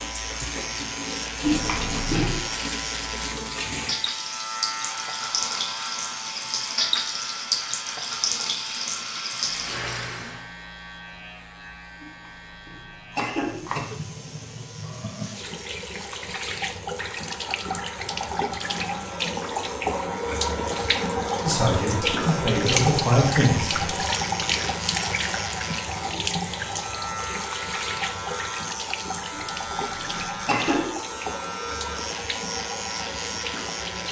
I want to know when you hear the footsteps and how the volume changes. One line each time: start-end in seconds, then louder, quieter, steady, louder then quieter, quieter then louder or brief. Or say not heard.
not heard.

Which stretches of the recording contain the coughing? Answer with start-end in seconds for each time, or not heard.
1.4-2.4, 12.0-13.8, 29.3-30.9.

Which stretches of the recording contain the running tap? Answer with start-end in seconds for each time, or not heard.
0.0-10.4, 13.3-34.0.